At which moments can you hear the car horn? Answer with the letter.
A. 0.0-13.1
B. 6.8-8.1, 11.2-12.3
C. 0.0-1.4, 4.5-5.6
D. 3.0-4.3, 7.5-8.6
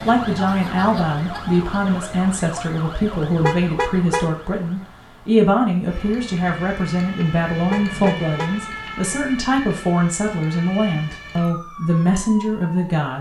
D.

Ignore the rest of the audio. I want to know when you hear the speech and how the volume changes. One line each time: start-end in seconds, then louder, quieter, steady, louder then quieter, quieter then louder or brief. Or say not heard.
0.0-13.1 steady.